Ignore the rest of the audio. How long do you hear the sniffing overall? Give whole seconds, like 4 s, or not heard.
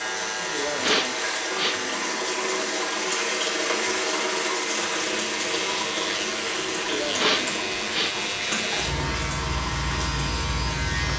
3 s.